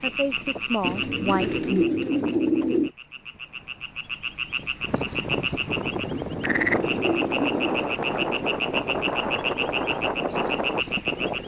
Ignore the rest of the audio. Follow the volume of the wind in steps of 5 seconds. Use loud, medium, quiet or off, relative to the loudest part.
quiet, loud, loud.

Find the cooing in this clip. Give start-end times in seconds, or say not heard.
0.8-2.9, 6.1-7.9.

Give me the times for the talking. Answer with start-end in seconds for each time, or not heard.
0.0-1.9.